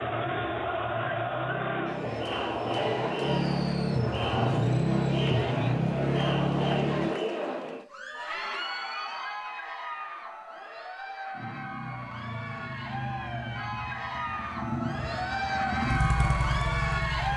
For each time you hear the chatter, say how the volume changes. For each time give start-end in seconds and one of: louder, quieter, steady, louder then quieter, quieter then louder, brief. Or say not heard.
0.0-17.3 quieter then louder.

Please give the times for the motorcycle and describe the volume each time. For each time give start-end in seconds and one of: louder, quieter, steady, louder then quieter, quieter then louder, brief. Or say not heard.
0.0-7.2 louder
11.3-17.3 louder.